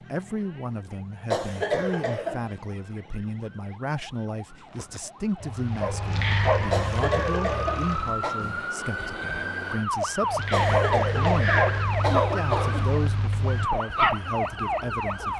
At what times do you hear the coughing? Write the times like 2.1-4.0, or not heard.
1.3-2.6, 6.7-8.4, 10.5-12.9.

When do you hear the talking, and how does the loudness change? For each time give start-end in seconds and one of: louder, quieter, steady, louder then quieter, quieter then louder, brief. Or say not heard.
0.1-15.3 steady.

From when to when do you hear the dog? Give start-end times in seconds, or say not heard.
4.7-7.0, 10.2-15.3.